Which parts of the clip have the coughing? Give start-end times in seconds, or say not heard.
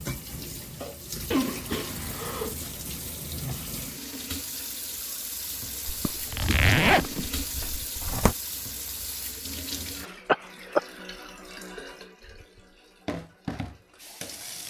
1.3-2.5, 6.0-7.3, 10.2-10.8.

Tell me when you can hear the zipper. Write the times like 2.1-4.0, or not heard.
5.8-8.3.